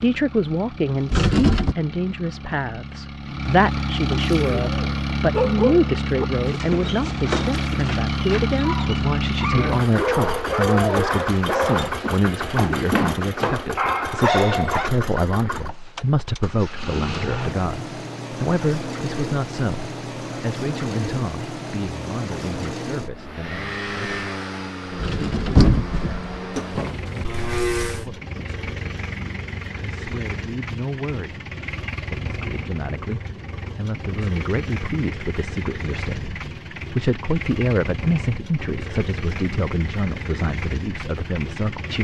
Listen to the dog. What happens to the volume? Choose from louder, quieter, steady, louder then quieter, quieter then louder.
quieter then louder.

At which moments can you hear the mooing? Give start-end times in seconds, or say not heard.
26.5-28.1.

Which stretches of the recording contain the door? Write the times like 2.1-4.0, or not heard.
1.1-1.8, 25.0-26.4.